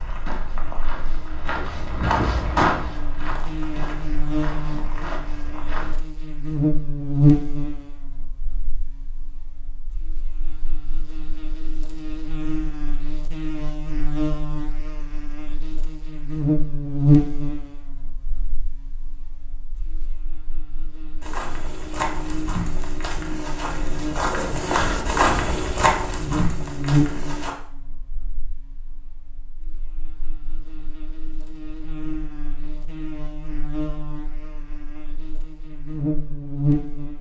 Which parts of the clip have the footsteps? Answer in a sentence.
You can hear the footsteps from 0.0 to 6.0 s and from 21.2 to 27.6 s.